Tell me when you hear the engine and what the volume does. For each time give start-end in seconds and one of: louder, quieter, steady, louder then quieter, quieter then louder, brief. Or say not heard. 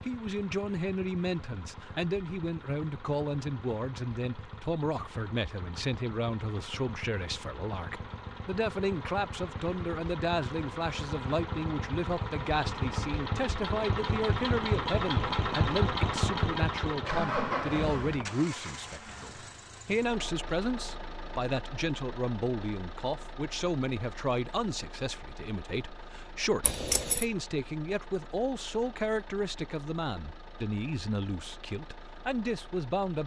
0.0-33.2 louder then quieter.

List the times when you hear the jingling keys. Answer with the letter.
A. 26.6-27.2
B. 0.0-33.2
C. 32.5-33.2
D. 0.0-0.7
A.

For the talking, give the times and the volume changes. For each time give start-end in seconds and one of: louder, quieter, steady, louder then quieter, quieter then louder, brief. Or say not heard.
0.0-33.2 steady.